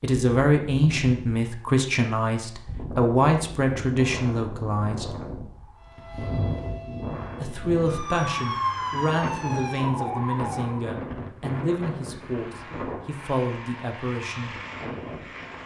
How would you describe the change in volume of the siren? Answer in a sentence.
The loudness of the siren goes down, then up.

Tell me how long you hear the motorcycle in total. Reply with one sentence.
You can't hear the motorcycle here.